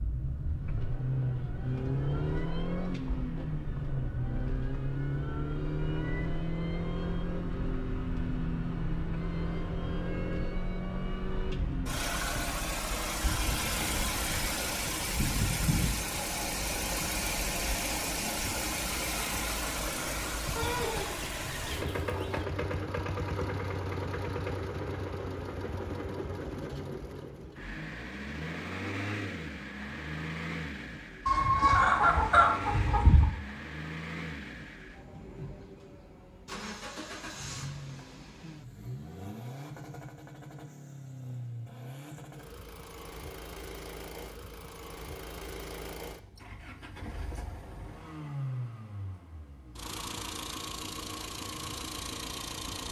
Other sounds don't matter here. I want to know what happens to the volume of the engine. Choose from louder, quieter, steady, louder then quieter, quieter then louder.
quieter.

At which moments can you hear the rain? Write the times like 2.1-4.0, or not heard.
not heard.